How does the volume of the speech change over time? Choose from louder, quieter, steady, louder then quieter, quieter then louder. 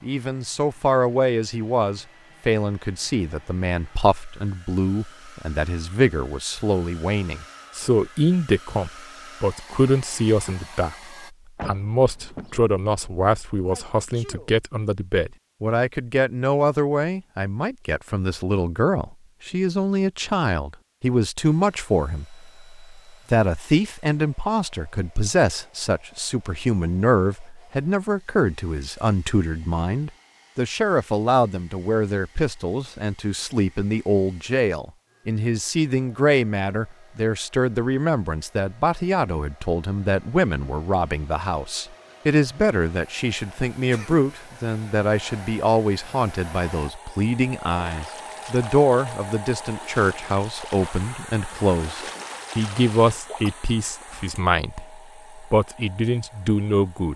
steady.